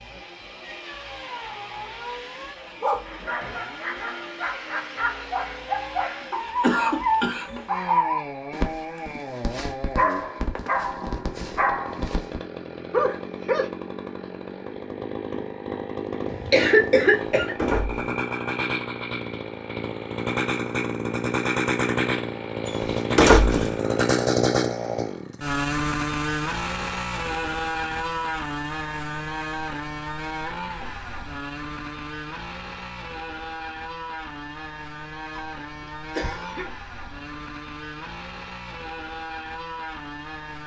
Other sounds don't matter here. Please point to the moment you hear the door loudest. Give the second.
23 s.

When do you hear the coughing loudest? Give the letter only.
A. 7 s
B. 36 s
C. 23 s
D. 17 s
D.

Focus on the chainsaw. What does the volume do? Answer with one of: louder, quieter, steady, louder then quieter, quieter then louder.
louder then quieter.